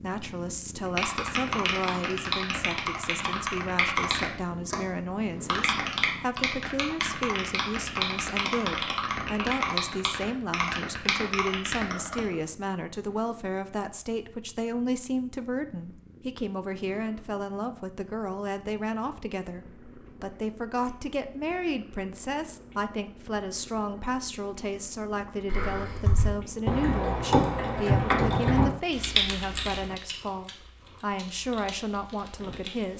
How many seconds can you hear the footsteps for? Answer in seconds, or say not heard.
not heard.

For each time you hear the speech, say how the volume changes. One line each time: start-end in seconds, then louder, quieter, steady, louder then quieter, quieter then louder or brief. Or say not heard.
0.0-32.9 steady.